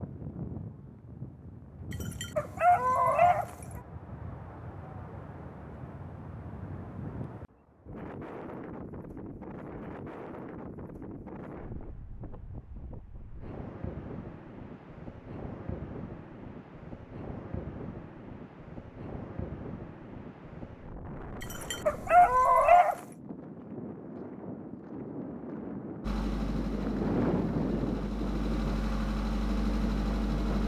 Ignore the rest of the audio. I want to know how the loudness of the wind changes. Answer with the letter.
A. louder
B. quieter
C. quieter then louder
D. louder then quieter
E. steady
A.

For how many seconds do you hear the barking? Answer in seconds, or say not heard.
3 s.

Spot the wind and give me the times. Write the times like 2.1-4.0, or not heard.
0.0-30.6.